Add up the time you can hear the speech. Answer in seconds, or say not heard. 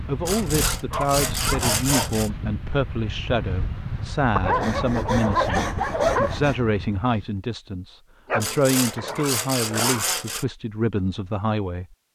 12 s.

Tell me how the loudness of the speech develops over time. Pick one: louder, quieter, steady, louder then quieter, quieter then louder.
steady.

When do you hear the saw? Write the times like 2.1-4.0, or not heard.
0.2-2.3, 4.5-6.6, 8.4-10.4.